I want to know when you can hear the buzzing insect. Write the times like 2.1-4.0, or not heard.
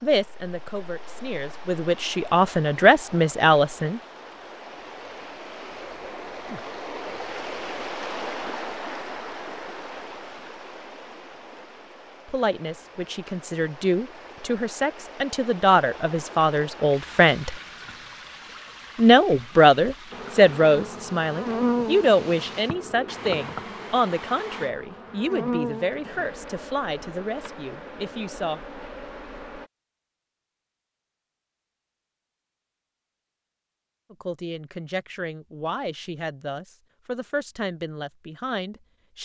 20.1-29.6.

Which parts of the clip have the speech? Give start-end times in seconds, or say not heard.
0.0-4.0, 12.2-17.6, 18.9-28.6, 34.1-39.2.